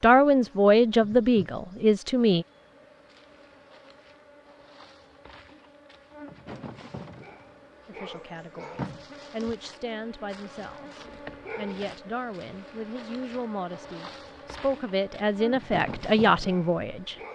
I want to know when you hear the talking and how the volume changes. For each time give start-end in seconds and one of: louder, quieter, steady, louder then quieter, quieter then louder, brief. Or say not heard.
0.0-2.5 brief
7.8-17.1 louder.